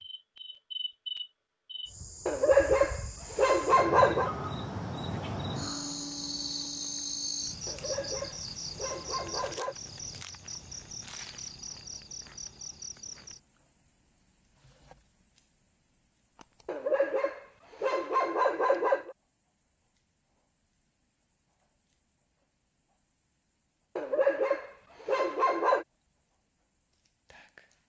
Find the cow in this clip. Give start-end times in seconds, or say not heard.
not heard.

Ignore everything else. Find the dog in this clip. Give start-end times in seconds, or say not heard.
2.2-4.3, 7.7-9.8, 16.6-19.1, 23.9-25.9.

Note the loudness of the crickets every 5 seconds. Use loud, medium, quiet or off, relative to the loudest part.
loud, loud, medium, quiet, quiet, quiet.